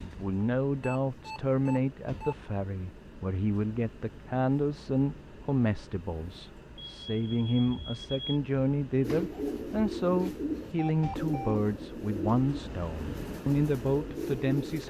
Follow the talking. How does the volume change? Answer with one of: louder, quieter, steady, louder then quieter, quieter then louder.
steady.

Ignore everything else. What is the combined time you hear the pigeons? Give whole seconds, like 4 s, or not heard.
6 s.